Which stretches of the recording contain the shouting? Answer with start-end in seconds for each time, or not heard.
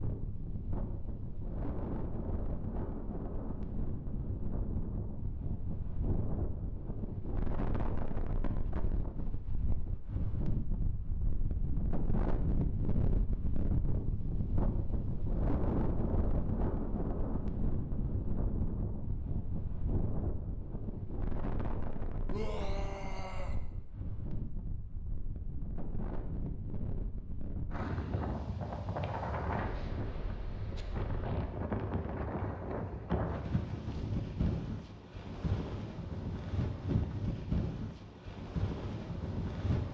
22.2-23.6.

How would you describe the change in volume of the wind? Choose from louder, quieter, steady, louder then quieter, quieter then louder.
steady.